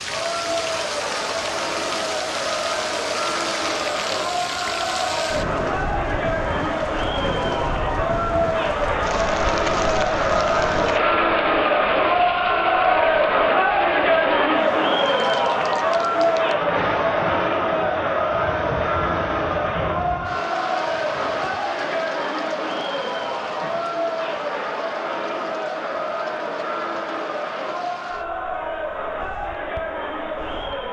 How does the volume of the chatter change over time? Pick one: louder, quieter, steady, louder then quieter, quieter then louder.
louder then quieter.